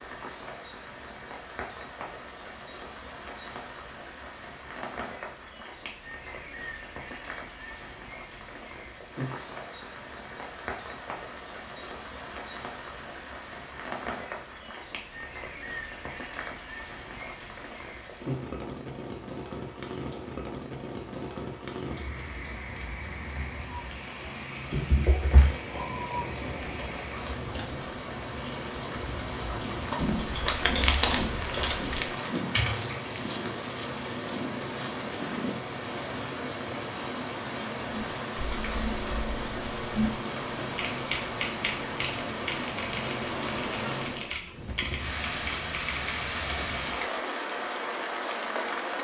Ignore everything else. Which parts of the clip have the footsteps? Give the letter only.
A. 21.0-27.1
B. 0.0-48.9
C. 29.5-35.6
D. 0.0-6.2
C.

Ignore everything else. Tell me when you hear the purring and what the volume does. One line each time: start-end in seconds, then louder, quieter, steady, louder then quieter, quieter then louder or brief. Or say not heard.
not heard.